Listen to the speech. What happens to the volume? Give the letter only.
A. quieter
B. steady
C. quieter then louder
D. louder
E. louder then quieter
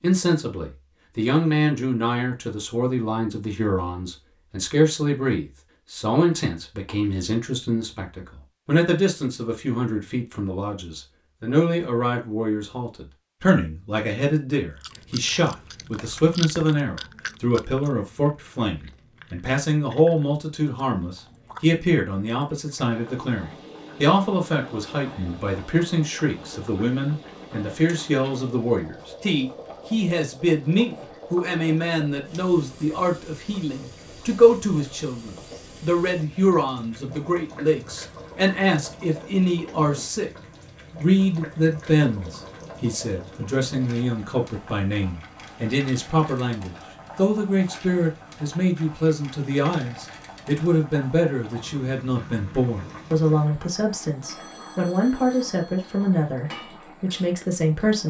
B.